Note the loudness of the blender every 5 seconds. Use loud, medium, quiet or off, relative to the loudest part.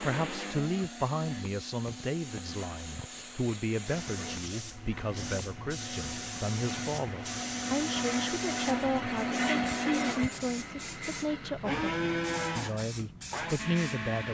medium, loud, loud.